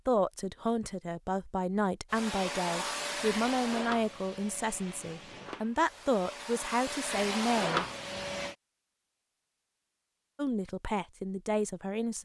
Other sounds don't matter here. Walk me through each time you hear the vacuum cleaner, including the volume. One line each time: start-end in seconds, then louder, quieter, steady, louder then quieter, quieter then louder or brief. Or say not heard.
2.1-8.6 quieter then louder.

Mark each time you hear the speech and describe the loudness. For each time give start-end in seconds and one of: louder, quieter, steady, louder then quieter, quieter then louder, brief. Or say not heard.
0.1-7.8 steady
10.3-12.1 brief.